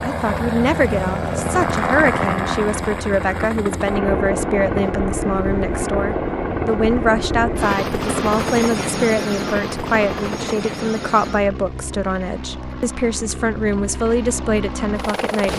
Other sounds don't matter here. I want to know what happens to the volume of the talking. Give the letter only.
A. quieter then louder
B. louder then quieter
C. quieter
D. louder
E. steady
E.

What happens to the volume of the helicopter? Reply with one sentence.
The volume of the helicopter goes down.